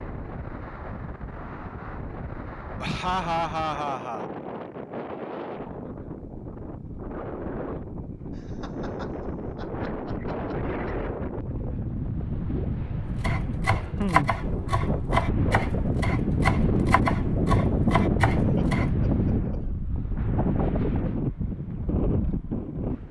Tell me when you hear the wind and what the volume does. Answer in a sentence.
You can hear the wind from 0.0 to 23.0 s, getting louder.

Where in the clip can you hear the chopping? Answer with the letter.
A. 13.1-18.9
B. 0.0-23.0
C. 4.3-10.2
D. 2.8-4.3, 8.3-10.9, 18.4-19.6
A.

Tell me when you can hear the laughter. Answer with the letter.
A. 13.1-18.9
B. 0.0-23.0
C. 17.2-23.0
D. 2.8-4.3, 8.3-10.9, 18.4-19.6
D.